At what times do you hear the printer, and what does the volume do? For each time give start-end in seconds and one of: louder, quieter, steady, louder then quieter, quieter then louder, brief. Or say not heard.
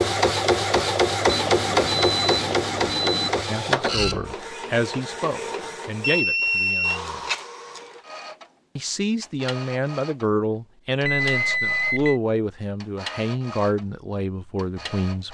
0.0-15.2 quieter.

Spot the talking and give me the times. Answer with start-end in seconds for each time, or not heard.
3.5-7.2, 8.8-15.2.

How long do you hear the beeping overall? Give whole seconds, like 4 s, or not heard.
4 s.